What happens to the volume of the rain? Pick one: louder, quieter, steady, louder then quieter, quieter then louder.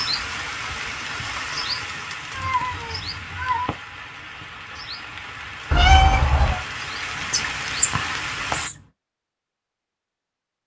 quieter then louder.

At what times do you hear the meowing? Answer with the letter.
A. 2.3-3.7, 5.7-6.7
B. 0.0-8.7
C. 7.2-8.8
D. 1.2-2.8
A.